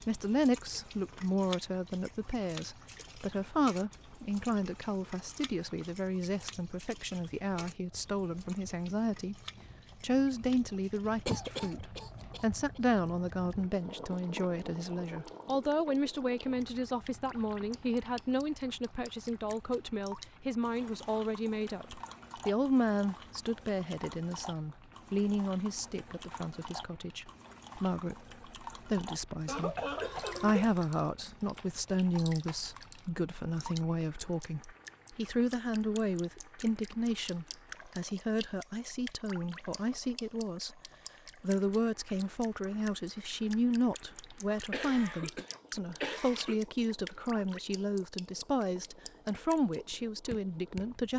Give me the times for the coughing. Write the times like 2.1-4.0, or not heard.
11.2-12.8, 29.4-30.8, 44.3-46.6.